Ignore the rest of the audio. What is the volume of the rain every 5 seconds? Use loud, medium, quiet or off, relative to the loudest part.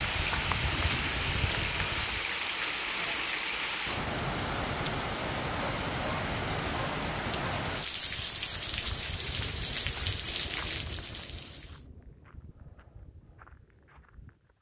loud, loud, medium.